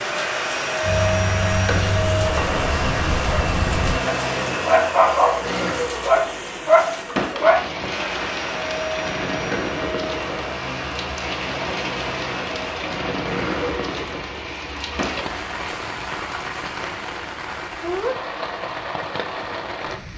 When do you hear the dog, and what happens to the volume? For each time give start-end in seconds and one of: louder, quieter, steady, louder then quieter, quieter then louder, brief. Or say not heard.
0.8-7.7 louder.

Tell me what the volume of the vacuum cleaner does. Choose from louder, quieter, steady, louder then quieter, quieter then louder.
quieter.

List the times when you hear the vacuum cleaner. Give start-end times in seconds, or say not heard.
0.0-15.3.